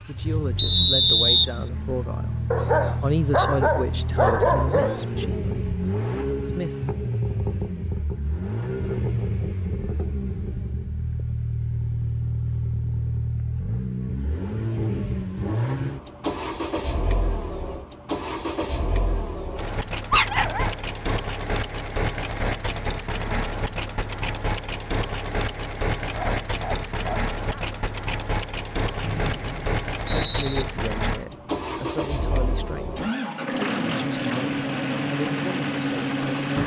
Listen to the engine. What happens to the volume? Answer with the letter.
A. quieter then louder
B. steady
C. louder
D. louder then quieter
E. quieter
B.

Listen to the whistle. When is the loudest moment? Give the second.
1 s.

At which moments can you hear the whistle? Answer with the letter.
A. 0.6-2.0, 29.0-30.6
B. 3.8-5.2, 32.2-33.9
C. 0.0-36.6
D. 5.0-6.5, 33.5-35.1
A.